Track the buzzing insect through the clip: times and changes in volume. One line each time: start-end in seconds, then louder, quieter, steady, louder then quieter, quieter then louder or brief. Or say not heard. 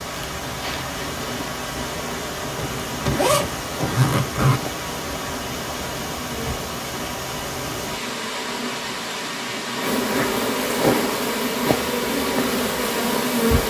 0.2-13.6 louder.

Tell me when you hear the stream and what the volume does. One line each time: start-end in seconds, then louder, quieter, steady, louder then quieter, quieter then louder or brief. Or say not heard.
0.0-13.6 steady.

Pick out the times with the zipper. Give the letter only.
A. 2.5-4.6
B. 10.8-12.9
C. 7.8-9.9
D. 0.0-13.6
A.